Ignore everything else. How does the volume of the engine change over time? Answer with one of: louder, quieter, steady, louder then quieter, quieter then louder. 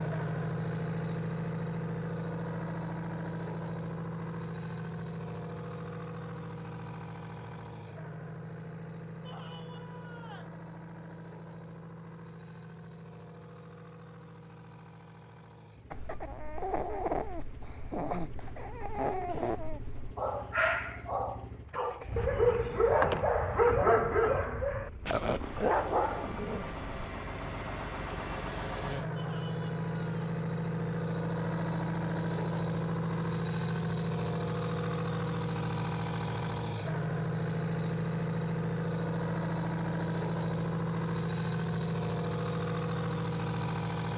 quieter then louder.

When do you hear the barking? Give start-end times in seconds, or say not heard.
15.9-26.9.